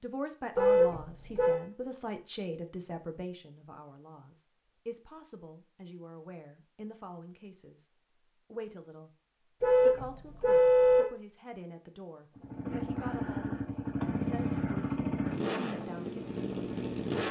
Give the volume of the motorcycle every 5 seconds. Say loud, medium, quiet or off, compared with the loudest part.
off, off, loud, loud.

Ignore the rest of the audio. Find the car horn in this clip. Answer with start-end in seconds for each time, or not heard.
0.6-1.6, 9.6-11.1.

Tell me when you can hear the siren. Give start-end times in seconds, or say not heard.
not heard.